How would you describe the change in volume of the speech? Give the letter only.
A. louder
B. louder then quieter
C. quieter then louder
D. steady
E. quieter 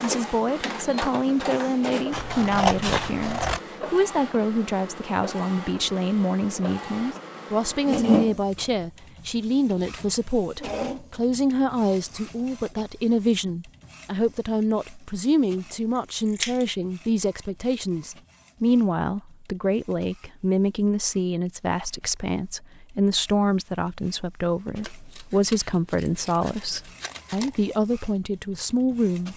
D.